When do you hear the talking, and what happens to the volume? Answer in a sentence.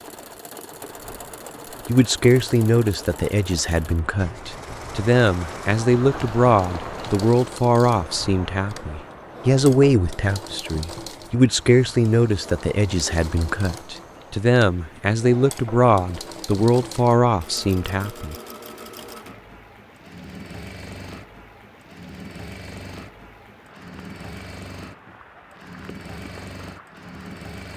The talking can be heard from 1.9 to 18.4 s, at a steady volume.